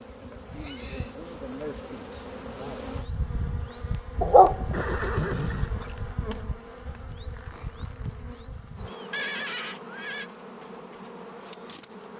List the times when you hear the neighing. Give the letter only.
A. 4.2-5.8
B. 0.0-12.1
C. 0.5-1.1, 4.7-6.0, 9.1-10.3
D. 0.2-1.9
C.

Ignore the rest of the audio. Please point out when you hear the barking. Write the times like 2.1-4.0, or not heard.
4.2-5.8.